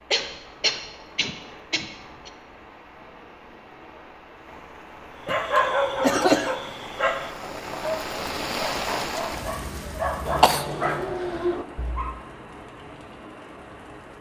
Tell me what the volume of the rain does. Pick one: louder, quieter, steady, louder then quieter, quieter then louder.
louder then quieter.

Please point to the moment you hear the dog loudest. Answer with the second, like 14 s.
6 s.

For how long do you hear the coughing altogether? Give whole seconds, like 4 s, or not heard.
4 s.